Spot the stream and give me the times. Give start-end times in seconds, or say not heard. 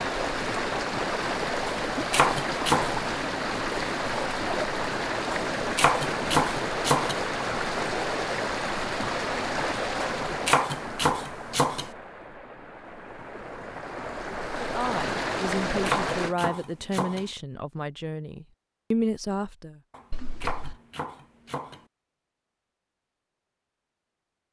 0.0-16.4.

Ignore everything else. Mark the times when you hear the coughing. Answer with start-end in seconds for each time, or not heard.
20.1-20.8.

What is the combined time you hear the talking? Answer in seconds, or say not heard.
5 s.